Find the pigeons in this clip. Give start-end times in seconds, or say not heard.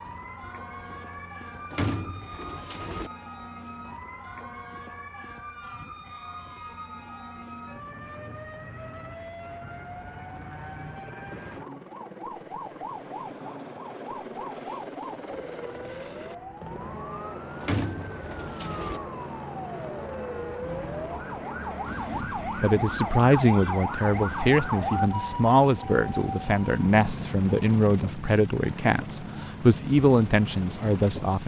1.7-3.1, 17.6-19.0.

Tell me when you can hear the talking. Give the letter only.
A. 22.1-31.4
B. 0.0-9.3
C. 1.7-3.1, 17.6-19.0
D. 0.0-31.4
A.